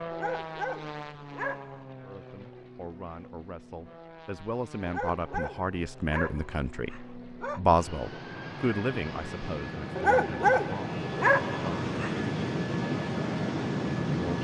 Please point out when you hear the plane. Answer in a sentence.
The plane can be heard from 0.0 to 14.3 s.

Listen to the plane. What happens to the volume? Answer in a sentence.
The loudness of the plane goes down, then up.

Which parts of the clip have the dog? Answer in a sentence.
You can hear the dog from 0.1 to 1.9 s, from 4.8 to 7.6 s and from 9.9 to 12.2 s.